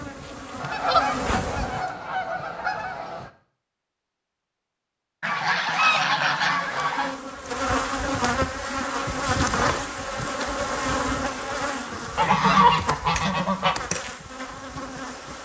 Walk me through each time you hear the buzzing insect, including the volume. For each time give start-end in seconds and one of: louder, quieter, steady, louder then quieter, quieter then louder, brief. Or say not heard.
0.0-2.0 brief
6.5-15.4 quieter.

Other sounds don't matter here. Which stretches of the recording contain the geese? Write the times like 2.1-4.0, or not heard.
0.6-3.3, 5.2-7.2, 12.2-13.8.